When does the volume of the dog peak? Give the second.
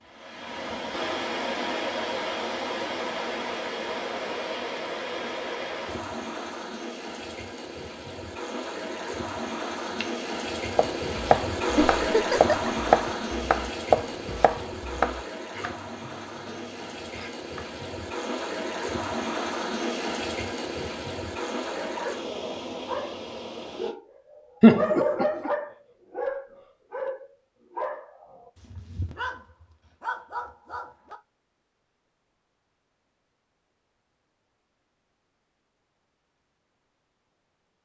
25 s.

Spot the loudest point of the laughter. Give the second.
25 s.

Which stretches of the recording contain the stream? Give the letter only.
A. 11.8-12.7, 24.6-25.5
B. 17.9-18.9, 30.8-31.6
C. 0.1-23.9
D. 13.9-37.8
C.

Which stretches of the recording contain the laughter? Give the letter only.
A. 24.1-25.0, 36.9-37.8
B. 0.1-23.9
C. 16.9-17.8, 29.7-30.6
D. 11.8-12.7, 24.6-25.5
D.